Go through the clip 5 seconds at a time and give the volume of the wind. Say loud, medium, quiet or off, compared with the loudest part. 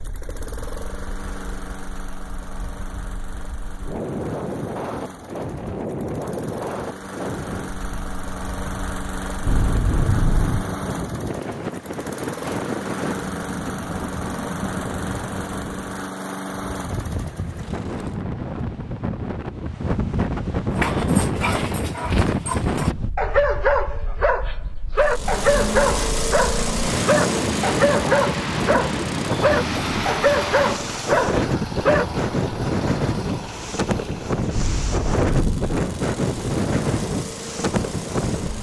medium, medium, medium, medium, loud, loud, loud, loud.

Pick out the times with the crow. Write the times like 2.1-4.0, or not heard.
not heard.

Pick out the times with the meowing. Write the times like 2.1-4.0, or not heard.
9.4-10.7, 34.5-35.8.